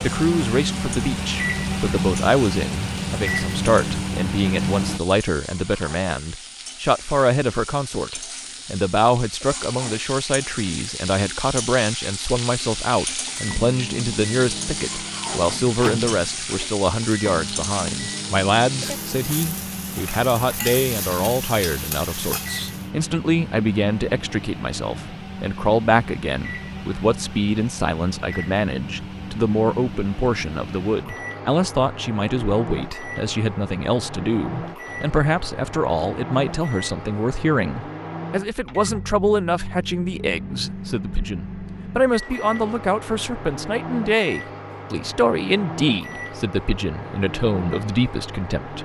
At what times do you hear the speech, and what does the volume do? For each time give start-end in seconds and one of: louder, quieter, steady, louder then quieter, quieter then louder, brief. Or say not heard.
0.0-48.7 steady.